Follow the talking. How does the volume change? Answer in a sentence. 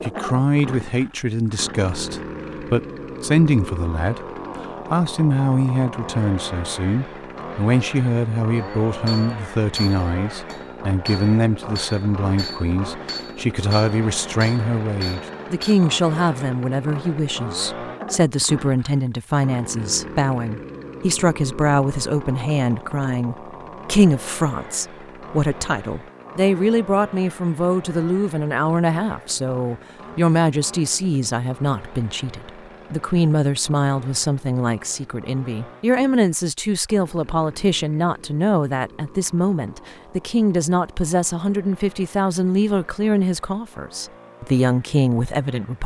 The volume of the talking stays about the same.